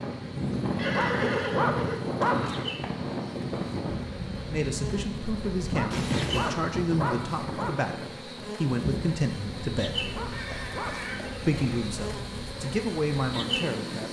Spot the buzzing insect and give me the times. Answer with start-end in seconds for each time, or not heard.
0.0-14.0.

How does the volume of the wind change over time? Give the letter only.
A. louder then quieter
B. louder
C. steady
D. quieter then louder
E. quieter
E.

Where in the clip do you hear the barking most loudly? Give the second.
2 s.